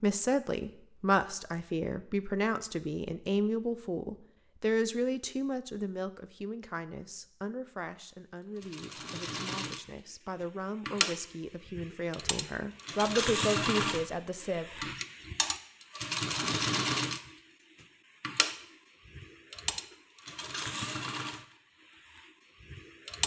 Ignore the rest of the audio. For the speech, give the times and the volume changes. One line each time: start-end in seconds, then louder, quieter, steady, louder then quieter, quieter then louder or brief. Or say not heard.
0.0-14.7 quieter then louder.